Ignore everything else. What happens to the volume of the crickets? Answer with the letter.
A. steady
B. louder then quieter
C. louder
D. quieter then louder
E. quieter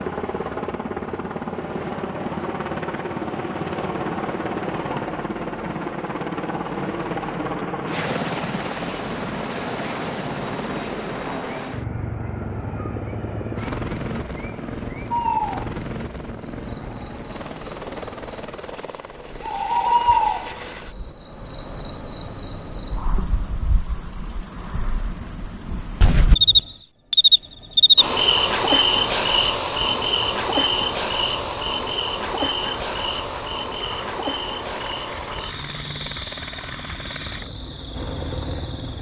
B.